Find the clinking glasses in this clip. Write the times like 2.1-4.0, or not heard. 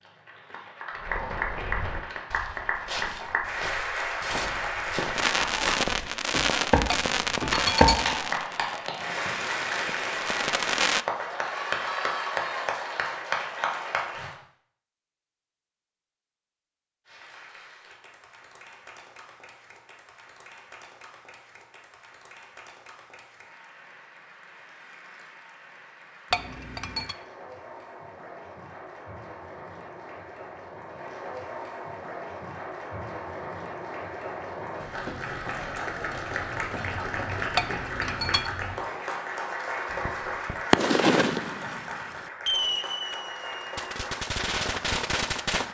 6.9-8.2, 26.3-27.1, 37.5-38.5.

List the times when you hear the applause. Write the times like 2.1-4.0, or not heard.
0.0-5.8, 7.3-14.3, 17.1-45.6.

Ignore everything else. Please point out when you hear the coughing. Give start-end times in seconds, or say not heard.
not heard.